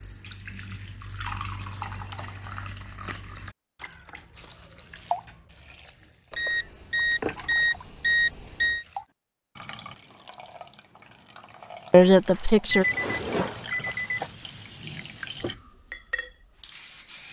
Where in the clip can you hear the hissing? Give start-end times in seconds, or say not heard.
13.8-17.2.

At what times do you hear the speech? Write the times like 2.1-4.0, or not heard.
11.9-12.8.